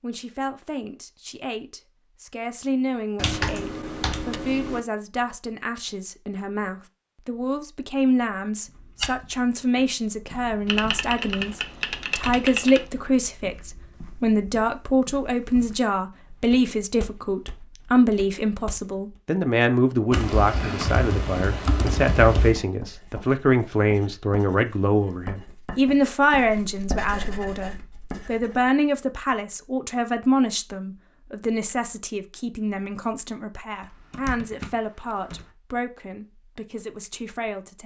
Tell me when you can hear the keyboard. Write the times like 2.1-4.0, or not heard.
3.1-4.8, 10.7-12.8, 20.1-22.6, 33.8-35.5.